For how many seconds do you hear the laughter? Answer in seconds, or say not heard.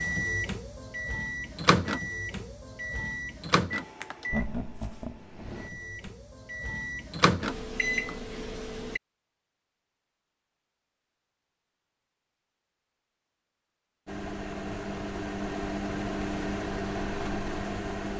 2 s.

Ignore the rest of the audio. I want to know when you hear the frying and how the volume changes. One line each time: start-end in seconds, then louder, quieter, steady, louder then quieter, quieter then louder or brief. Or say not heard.
not heard.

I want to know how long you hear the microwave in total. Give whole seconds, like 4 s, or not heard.
13 s.